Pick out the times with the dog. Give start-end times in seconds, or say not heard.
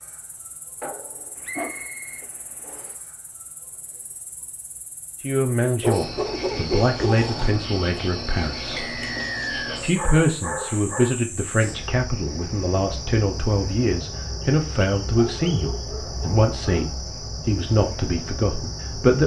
0.8-3.0, 5.8-7.7, 9.7-11.2, 15.2-16.9.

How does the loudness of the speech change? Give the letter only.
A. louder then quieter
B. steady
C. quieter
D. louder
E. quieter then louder
B.